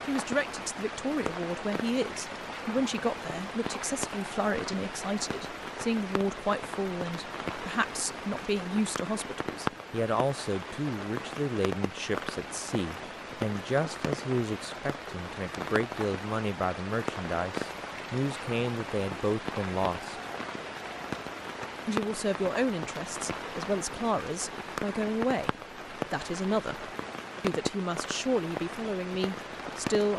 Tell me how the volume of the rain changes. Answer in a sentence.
The loudness of the rain stays about the same.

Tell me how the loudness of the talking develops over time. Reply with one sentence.
The loudness of the talking stays about the same.